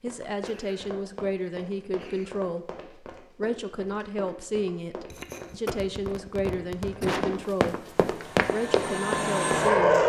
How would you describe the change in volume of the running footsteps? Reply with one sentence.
The volume of the running footsteps goes up.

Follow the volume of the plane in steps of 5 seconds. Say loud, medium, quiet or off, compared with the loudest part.
off, loud.